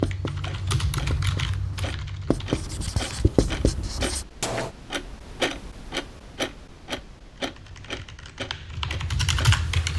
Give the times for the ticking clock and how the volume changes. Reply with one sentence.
You can hear the ticking clock from 0.2 to 9.7 s, getting louder then quieter.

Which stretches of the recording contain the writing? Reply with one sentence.
The writing can be heard from 0.0 to 4.7 s.